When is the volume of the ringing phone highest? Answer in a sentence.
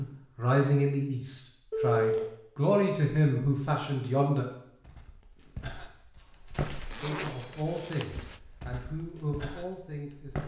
The volume of the ringing phone peaks at 2 seconds.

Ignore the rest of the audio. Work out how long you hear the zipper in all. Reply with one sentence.
You can hear the zipper for 2 seconds altogether.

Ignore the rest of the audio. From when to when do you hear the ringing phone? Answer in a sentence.
The ringing phone can be heard from 1.7 to 2.2 s and from 6.2 to 7.8 s.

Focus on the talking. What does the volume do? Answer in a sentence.
The loudness of the talking goes down.